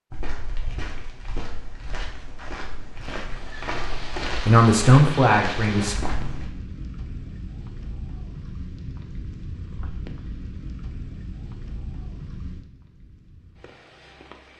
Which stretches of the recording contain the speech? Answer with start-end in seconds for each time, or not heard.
4.5-6.0.